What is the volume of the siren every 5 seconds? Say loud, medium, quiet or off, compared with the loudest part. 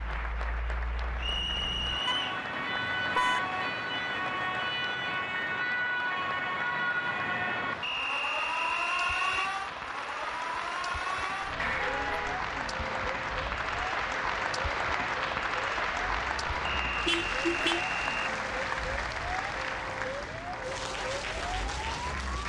loud, loud, medium, medium, medium.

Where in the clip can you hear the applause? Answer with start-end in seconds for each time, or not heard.
0.0-22.4.